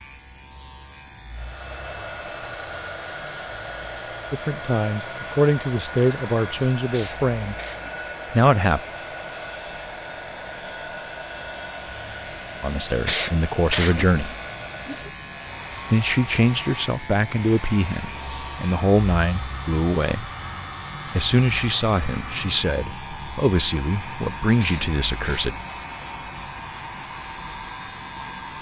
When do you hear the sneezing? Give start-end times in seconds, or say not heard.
6.9-8.0, 13.1-14.1, 24.6-25.6.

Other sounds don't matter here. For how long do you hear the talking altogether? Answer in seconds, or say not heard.
14 s.